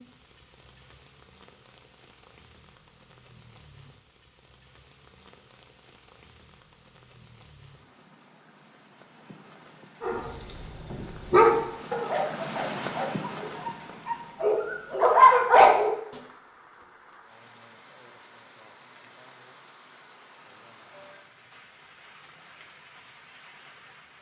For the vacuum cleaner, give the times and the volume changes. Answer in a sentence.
The vacuum cleaner can't be heard in this clip.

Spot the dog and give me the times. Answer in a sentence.
You can hear the dog from 10.0 to 15.9 s.